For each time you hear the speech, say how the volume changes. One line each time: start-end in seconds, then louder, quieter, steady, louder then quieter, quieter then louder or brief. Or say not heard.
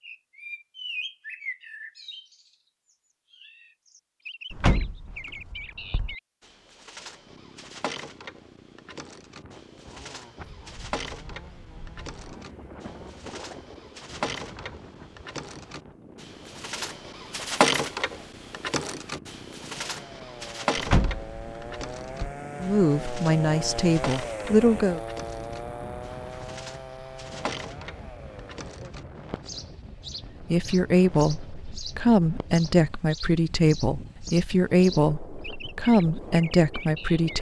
22.6-25.0 brief
30.4-37.3 steady.